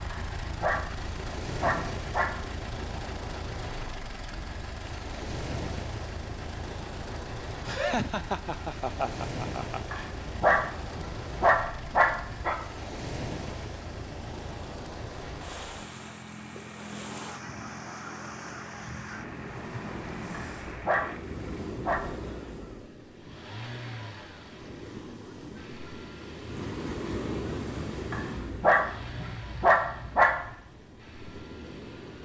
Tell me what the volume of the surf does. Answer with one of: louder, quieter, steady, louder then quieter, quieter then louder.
steady.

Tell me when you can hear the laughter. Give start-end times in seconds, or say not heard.
7.7-10.0.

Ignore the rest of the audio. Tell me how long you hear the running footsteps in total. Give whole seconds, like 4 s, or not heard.
not heard.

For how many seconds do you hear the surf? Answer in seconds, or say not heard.
32 s.